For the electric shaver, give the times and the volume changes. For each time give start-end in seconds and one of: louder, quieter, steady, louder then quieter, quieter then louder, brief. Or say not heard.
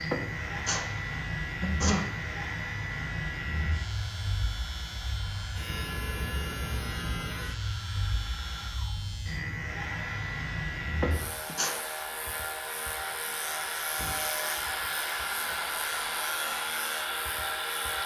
0.0-18.0 steady.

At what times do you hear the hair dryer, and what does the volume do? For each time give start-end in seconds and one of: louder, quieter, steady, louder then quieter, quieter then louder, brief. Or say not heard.
0.2-18.0 louder.